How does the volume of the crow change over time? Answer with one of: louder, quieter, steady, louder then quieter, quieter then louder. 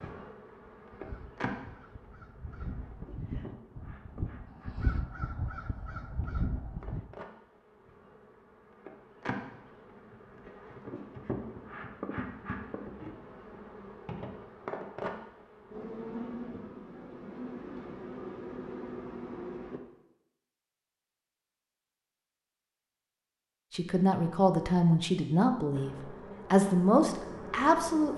louder.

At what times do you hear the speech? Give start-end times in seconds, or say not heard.
23.7-28.1.